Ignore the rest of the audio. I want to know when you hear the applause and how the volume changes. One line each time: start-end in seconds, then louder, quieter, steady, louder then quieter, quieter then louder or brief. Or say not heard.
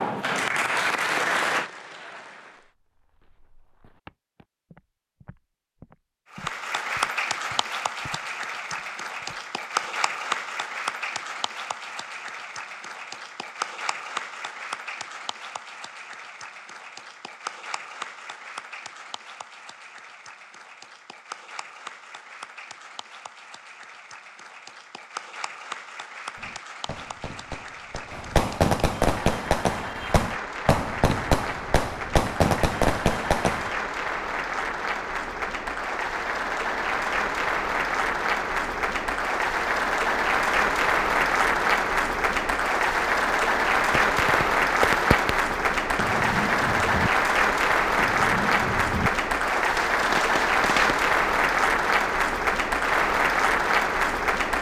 0.0-2.7 brief
6.3-54.5 quieter then louder.